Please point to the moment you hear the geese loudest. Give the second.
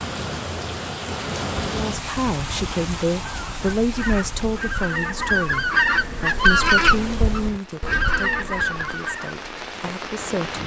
7 s.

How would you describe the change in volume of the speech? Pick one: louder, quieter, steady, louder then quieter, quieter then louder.
quieter.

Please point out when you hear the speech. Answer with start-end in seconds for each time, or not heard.
1.7-10.6.